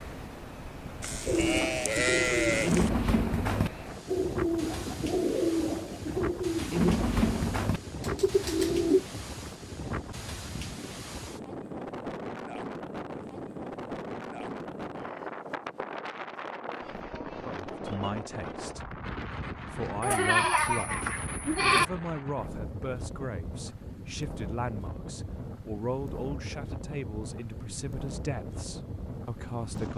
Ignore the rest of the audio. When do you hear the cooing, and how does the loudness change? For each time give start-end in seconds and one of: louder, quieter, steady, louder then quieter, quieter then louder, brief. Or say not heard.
1.2-9.3 steady.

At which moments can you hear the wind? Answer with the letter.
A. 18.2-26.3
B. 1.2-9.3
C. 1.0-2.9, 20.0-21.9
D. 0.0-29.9
D.